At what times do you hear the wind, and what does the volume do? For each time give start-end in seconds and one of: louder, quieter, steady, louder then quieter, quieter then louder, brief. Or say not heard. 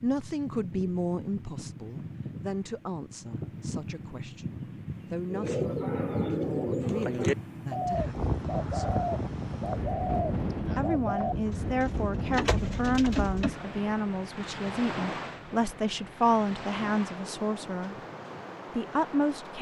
0.0-19.5 louder then quieter.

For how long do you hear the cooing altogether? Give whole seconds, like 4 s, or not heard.
8 s.